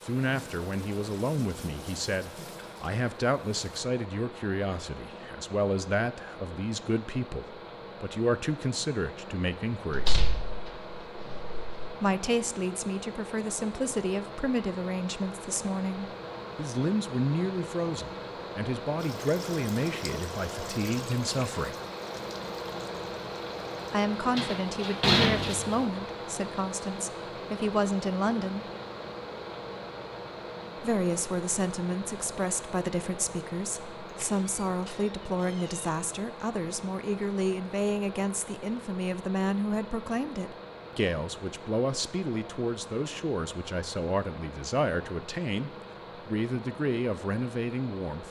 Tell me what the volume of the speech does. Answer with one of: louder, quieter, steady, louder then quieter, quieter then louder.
steady.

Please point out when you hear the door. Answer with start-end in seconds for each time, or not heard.
9.9-11.9, 24.4-25.9, 34.0-35.9.